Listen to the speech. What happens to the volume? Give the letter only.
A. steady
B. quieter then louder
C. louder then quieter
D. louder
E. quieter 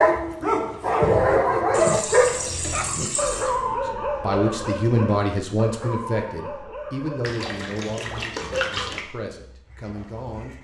E.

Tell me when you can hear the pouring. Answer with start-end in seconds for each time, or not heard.
1.7-3.5, 7.2-9.0.